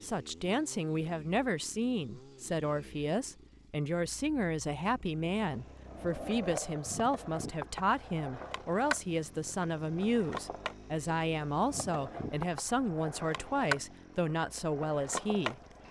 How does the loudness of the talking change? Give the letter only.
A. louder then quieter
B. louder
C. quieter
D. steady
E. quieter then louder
D.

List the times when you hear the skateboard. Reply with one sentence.
The skateboard can be heard from 5.3 to 15.8 s.